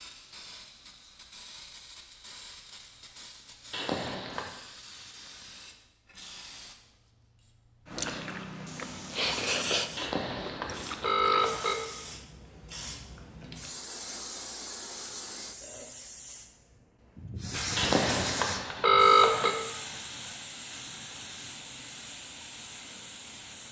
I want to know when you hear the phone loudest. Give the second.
19 s.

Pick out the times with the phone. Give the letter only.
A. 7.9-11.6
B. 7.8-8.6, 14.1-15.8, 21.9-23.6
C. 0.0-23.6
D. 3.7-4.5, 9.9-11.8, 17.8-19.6
D.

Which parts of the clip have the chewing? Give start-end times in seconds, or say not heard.
7.9-11.6.